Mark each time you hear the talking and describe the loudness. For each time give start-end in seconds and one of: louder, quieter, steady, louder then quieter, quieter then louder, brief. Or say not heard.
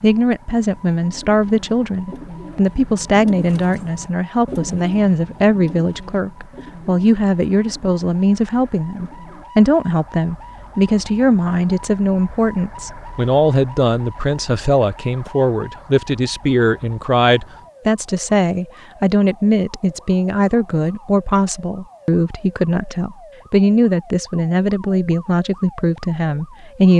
0.0-26.9 steady.